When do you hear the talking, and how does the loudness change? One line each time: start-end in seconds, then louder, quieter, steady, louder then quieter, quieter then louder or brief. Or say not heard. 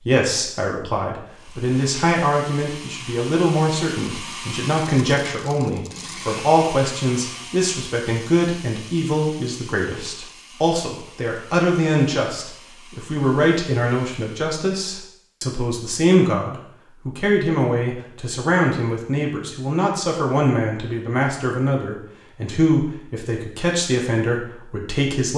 0.0-25.3 steady.